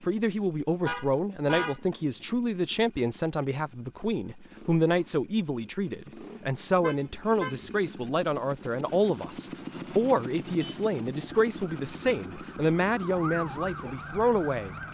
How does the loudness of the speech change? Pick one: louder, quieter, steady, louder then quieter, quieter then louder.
steady.